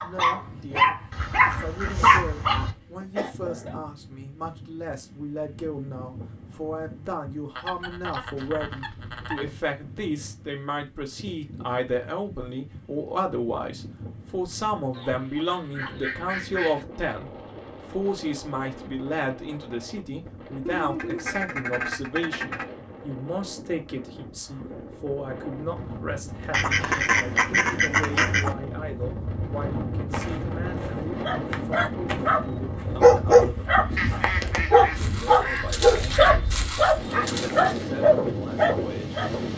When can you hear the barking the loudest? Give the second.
33 s.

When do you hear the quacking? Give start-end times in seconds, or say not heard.
1.1-2.8, 7.5-9.5, 14.9-16.9, 20.6-22.6, 26.5-28.6, 34.0-36.4.